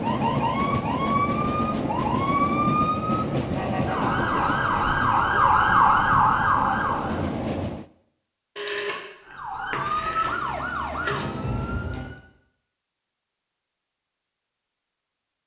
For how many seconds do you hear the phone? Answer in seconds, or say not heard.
3 s.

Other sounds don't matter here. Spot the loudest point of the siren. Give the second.
6 s.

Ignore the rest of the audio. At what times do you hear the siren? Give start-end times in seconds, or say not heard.
0.0-7.3, 9.2-12.2.